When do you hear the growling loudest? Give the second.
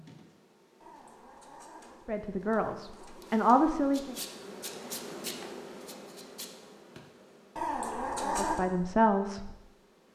8 s.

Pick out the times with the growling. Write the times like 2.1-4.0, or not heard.
0.8-3.4, 7.5-8.6.